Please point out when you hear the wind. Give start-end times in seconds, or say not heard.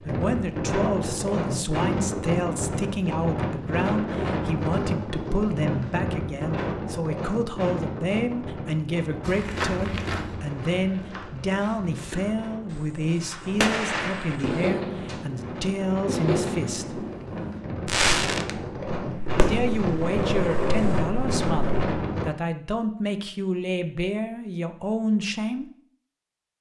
0.0-22.2.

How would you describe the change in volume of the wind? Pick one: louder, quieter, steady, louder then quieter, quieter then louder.
quieter then louder.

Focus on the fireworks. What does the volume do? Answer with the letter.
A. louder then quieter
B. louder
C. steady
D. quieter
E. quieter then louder
C.